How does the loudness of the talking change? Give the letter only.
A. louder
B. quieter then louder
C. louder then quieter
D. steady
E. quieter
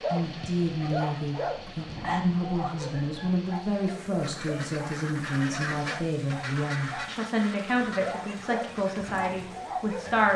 D.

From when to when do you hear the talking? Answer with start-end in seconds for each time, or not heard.
0.1-10.3.